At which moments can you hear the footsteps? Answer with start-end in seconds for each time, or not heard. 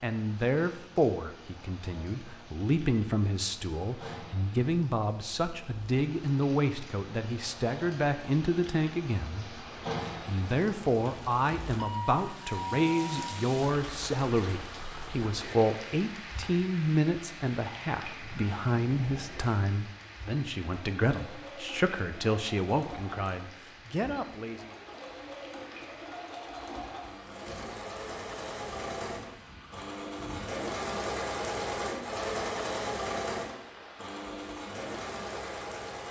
not heard.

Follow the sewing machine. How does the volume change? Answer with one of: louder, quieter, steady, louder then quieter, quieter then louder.
louder.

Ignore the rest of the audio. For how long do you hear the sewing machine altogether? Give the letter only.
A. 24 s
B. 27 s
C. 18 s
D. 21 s
C.